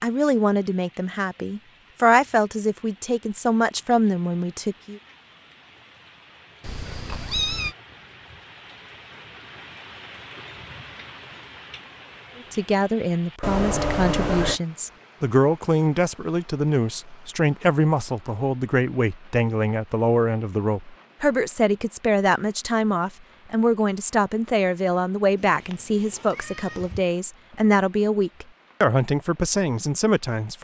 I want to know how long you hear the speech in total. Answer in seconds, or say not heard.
23 s.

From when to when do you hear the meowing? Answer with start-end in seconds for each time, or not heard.
6.6-7.8, 13.4-14.6, 25.4-27.0.